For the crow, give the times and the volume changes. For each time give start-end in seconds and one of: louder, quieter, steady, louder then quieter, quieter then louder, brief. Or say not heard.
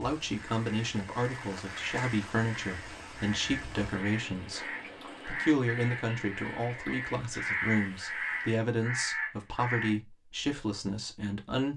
0.4-9.9 louder.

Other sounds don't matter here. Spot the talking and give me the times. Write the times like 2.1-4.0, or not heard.
0.0-11.7.